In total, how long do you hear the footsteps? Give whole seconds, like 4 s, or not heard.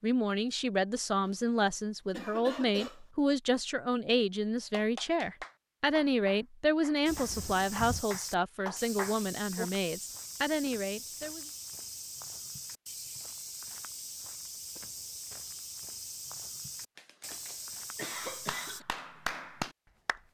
12 s.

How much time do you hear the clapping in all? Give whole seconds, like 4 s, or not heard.
7 s.